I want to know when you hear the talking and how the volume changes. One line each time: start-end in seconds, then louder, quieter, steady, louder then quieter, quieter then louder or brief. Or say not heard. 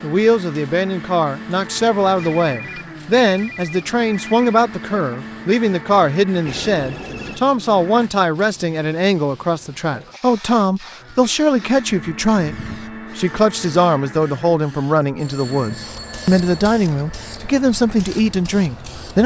0.0-19.2 steady.